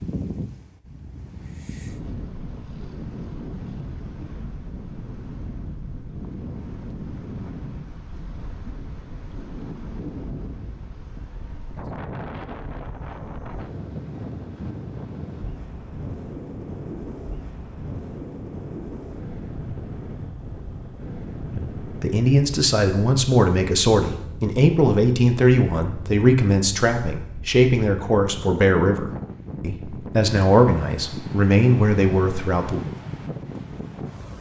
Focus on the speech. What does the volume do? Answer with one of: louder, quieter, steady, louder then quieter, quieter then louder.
steady.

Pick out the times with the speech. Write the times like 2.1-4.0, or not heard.
21.6-32.8.